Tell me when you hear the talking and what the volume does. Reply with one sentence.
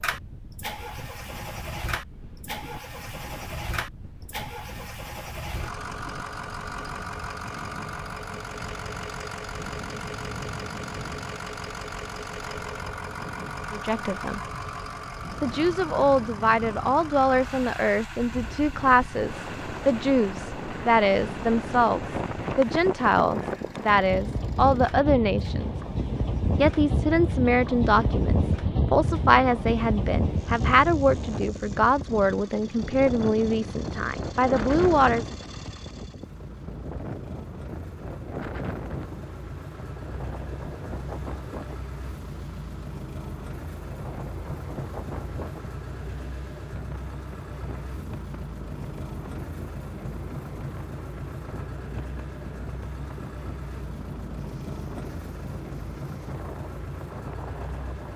You can hear the talking briefly from 13.7 to 14.4 s; from 15.4 to 25.8 s, at a steady volume; and from 26.6 to 35.4 s, at a steady volume.